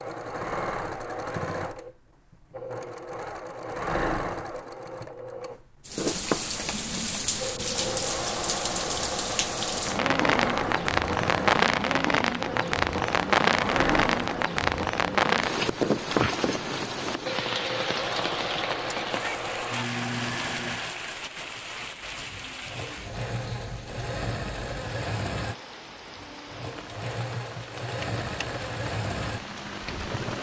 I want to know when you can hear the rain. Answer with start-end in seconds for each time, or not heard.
5.8-30.3.